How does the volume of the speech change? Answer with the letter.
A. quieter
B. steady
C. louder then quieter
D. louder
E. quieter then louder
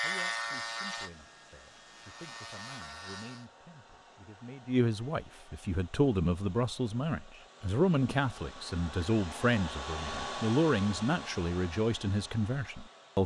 D.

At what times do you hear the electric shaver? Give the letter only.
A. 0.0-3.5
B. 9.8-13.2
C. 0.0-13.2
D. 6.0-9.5
A.